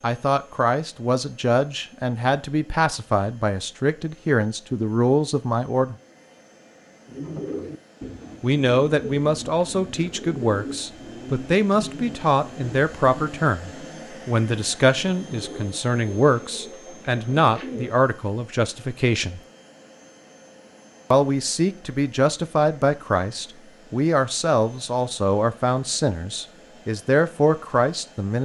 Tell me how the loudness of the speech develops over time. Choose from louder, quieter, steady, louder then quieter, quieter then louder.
steady.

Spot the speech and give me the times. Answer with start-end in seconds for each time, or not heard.
0.0-6.0, 8.4-19.4, 21.1-28.4.